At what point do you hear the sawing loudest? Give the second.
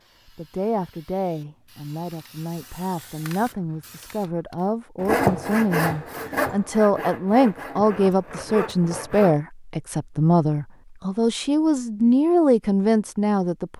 5 s.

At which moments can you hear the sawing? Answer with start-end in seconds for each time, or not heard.
5.0-9.3.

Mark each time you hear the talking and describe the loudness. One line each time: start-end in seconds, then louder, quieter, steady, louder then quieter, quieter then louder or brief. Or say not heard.
0.3-13.7 louder.